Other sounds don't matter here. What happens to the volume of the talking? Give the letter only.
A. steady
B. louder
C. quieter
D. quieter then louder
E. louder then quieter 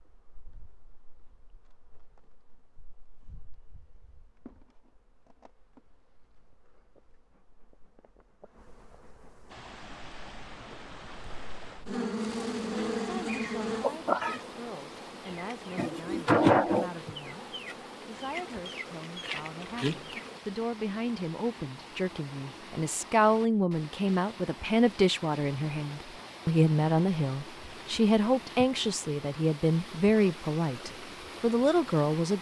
B.